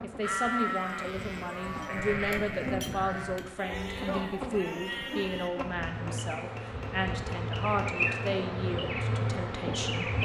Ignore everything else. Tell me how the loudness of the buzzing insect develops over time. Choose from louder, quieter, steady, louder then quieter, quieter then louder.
louder.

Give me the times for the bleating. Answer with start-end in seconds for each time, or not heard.
0.2-5.7.